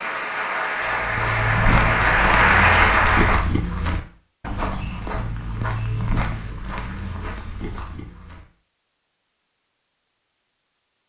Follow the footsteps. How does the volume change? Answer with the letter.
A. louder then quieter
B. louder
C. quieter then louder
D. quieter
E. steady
D.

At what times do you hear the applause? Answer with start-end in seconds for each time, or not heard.
0.0-3.5.